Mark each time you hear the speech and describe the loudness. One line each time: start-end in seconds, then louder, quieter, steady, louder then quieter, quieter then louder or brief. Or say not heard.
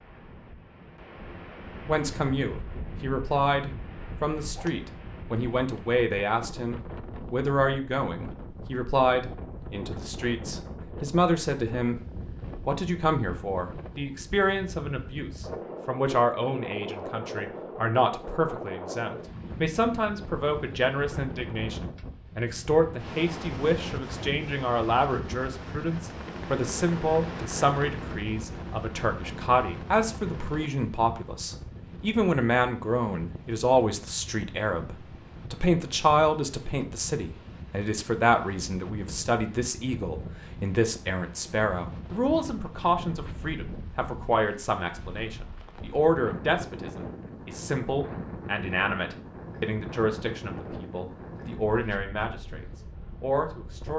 1.9-12.0 steady
12.7-53.9 steady.